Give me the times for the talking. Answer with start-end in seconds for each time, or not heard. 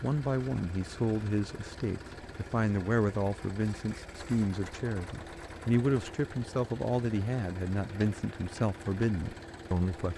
0.0-10.1.